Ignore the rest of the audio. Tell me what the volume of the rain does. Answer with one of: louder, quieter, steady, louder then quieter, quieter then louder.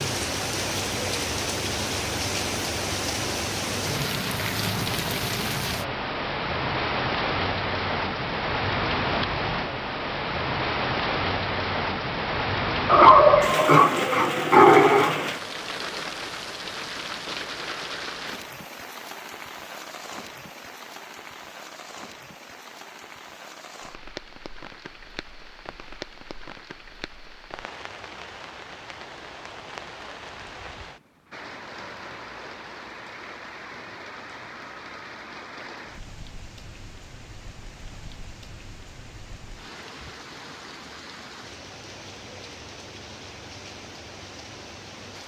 quieter.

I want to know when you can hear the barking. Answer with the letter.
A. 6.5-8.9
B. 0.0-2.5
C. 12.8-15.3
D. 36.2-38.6
C.